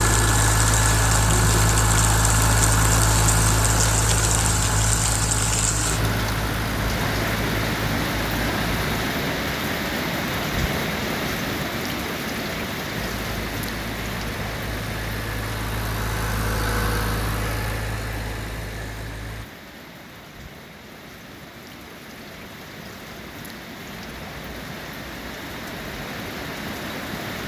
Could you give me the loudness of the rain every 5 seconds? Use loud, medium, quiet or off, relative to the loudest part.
loud, loud, loud, medium, quiet, medium.